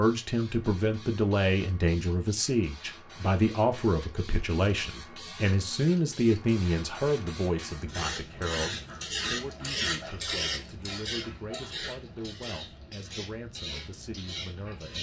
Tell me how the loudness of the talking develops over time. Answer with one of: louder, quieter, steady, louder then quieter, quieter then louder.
quieter.